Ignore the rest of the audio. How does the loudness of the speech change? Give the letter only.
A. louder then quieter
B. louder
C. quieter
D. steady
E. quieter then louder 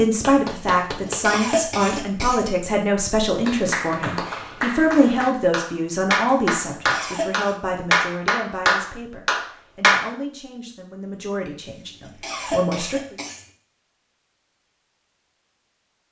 C.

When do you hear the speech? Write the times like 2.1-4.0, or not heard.
0.0-13.2.